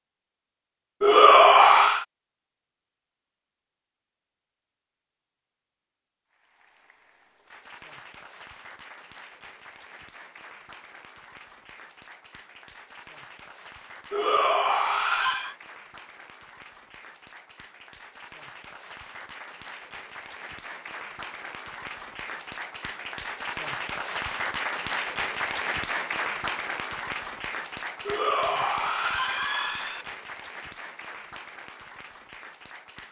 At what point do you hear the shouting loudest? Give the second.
1 s.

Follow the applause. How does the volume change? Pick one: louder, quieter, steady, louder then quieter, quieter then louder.
louder then quieter.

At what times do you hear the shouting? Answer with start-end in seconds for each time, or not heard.
1.0-2.0, 14.1-15.6, 28.1-30.1.